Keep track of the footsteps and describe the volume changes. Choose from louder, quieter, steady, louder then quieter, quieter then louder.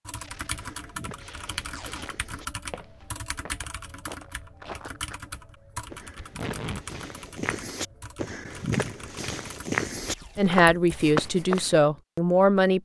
louder.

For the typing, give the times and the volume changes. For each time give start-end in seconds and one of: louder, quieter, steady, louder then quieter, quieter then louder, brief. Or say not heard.
0.1-11.1 quieter.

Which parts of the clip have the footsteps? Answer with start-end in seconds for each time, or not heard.
0.5-11.8.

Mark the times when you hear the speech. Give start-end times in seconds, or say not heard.
10.3-12.8.